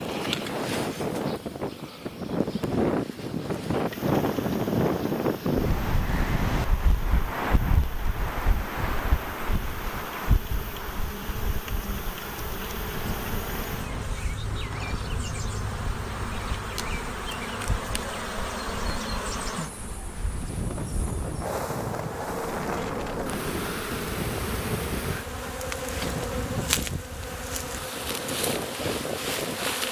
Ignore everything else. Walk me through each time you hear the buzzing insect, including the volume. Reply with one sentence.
You can hear the buzzing insect from 0.0 to 29.8 s, getting louder.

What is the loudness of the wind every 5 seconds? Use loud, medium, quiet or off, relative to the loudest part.
loud, loud, medium, quiet, medium, medium.